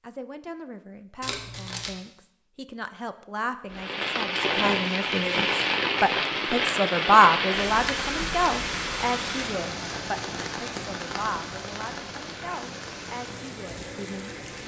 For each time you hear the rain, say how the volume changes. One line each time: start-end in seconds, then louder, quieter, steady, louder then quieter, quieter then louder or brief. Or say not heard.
3.7-14.6 quieter.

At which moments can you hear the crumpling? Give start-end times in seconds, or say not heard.
1.2-1.9.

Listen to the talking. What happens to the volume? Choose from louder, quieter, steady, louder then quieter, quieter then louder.
louder then quieter.